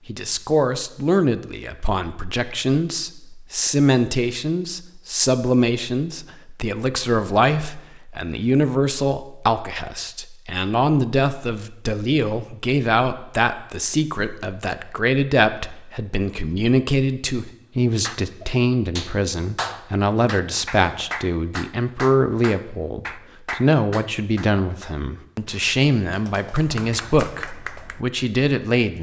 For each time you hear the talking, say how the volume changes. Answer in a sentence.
The talking can be heard from 0.1 to 28.9 s, at a steady volume.